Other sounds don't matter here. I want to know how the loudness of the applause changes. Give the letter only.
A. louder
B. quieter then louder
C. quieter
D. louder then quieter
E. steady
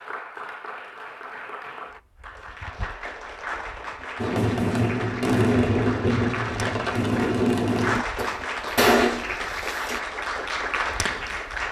A.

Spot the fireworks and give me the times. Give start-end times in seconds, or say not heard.
4.2-10.0.